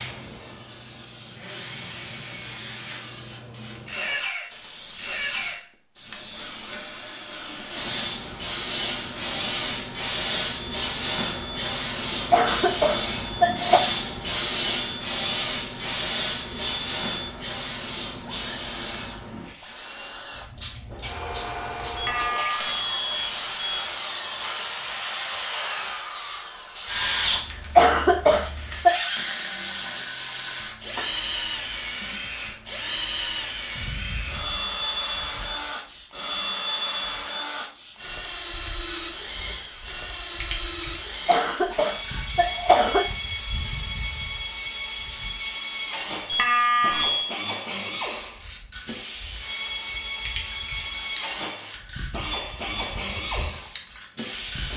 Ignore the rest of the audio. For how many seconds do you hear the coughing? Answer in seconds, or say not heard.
5 s.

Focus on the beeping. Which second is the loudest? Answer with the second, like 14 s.
47 s.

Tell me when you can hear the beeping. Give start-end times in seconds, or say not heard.
21.9-23.9, 46.2-47.4.